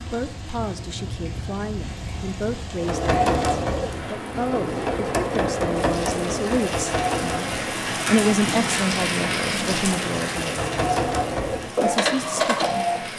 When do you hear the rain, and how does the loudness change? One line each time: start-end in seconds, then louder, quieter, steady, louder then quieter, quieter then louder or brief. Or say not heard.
0.0-13.1 louder then quieter.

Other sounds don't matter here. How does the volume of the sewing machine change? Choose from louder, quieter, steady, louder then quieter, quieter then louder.
quieter then louder.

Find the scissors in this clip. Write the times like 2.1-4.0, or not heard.
0.6-2.6.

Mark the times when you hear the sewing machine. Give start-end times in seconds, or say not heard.
2.7-13.1.